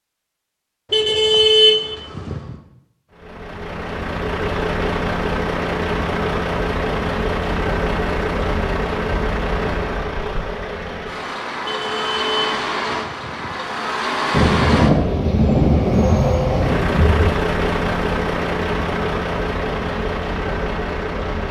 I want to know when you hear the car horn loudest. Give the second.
2 s.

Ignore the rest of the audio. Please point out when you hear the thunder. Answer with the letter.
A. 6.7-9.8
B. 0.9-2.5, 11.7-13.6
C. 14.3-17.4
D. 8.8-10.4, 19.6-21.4
C.